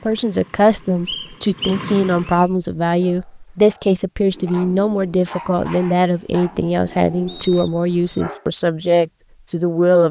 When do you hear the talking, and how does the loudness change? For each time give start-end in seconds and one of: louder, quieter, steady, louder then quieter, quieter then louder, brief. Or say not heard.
0.1-10.0 steady.